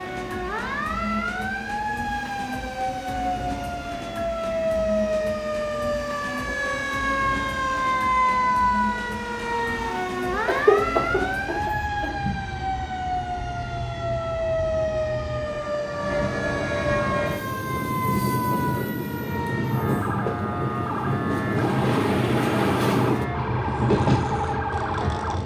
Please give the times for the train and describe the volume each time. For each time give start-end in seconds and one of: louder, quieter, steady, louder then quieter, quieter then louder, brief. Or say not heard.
0.0-25.4 louder.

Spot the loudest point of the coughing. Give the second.
11 s.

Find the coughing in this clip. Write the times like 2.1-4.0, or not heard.
10.4-12.3.